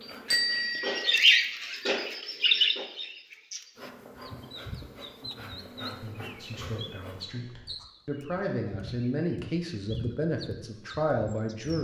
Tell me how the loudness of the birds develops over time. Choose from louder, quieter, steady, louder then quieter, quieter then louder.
quieter.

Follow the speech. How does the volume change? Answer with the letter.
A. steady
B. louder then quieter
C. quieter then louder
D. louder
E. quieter
D.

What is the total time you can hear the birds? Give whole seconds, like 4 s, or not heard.
12 s.